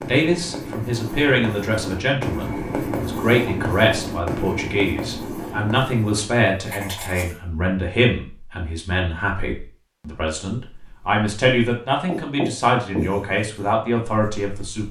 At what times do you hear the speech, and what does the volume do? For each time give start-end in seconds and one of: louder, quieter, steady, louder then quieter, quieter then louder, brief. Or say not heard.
0.1-14.8 steady.